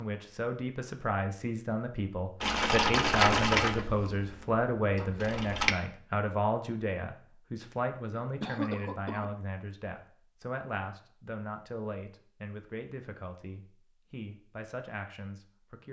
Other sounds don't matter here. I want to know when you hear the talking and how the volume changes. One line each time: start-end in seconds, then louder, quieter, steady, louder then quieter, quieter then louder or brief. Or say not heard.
0.0-15.8 quieter.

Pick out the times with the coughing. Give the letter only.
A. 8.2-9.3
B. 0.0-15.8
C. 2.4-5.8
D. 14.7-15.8
A.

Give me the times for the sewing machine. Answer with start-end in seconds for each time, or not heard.
2.4-5.8.